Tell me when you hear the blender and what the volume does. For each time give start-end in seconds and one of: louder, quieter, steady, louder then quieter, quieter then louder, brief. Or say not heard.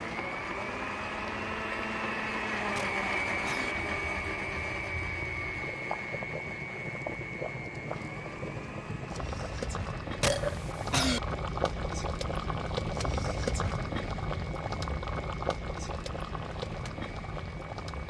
0.0-18.0 quieter.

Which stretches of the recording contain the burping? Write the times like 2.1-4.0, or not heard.
2.8-3.8, 10.2-11.2.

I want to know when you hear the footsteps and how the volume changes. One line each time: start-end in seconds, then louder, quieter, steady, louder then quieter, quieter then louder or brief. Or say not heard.
not heard.